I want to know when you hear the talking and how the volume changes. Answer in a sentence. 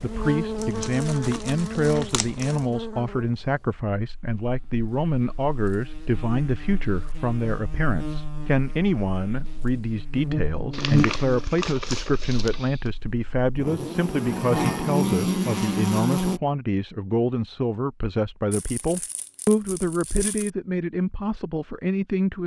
You can hear the talking from 0.0 to 22.4 s, at a steady volume.